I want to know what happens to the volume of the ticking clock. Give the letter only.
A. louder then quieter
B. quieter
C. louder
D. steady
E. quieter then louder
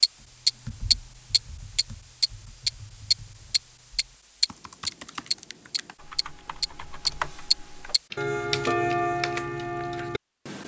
B.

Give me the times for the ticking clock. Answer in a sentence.
The ticking clock can be heard from 0.0 to 10.6 s.